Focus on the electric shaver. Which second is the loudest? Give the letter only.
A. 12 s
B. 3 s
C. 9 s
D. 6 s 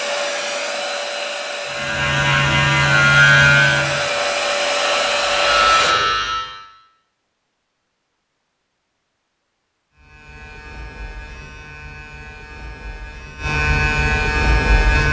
B.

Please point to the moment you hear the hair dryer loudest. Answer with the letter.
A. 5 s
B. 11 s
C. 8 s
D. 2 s
A.